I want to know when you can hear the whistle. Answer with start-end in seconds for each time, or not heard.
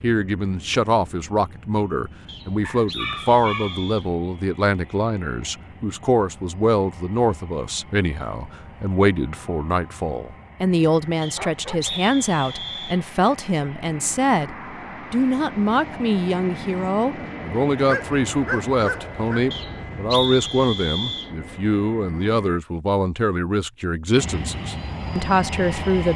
2.2-4.1, 11.2-13.0, 19.5-21.3.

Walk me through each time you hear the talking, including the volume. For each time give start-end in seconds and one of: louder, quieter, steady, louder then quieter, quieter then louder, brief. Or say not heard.
0.0-26.1 steady.